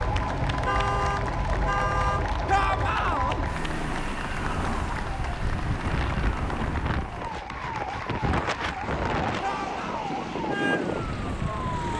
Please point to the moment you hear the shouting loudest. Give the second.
3 s.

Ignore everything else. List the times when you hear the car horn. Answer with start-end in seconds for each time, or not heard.
0.1-2.3.